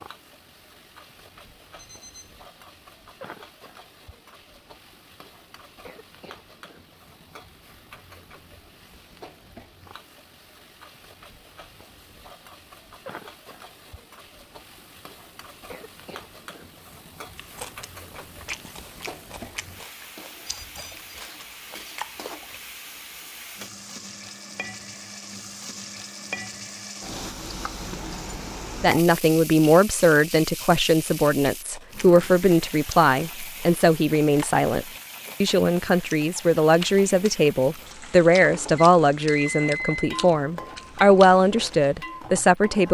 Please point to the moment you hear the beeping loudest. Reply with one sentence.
The volume of the beeping peaks at 40 seconds.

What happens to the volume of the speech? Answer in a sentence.
The loudness of the speech stays about the same.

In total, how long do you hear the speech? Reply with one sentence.
The speech can be heard for 14 seconds in total.